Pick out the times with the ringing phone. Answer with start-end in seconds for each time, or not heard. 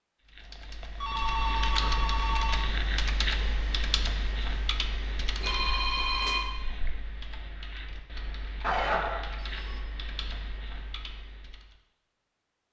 1.0-2.5, 5.4-6.5, 8.6-9.8.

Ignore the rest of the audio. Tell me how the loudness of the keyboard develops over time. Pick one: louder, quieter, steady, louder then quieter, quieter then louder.
quieter.